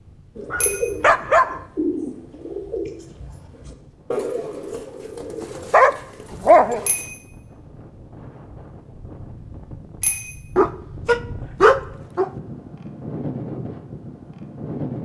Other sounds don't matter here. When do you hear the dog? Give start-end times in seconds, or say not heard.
0.5-1.6, 5.4-6.8, 10.6-12.3.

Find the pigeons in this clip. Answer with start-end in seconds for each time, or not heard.
0.3-7.0.